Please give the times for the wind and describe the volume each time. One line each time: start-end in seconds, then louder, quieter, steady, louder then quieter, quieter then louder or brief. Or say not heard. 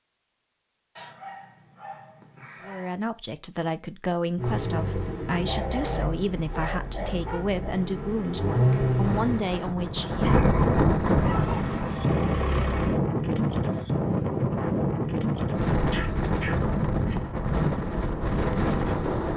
9.0-19.3 steady.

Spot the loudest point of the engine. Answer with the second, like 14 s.
9 s.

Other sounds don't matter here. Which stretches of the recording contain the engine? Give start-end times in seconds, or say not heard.
4.3-9.4, 11.2-13.0.